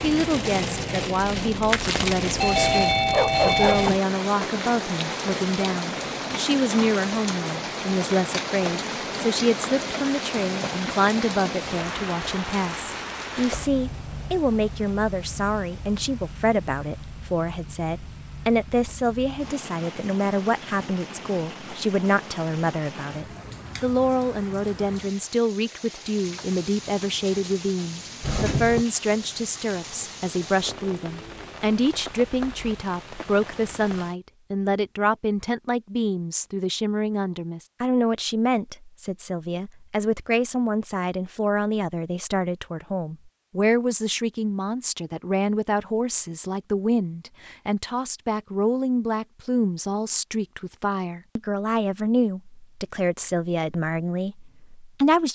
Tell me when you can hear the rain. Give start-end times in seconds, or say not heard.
0.0-34.1.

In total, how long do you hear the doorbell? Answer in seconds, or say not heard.
2 s.